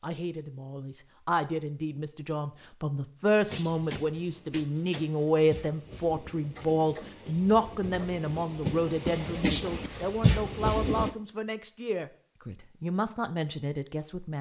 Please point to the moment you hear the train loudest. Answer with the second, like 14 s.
10 s.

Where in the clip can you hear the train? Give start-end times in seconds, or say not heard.
3.5-11.1.